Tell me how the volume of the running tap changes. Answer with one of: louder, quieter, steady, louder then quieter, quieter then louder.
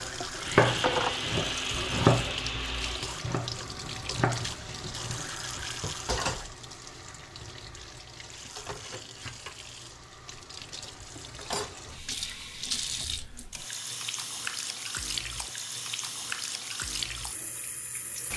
quieter then louder.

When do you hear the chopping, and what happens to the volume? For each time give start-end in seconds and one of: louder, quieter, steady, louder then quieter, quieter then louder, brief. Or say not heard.
0.0-5.3 quieter then louder.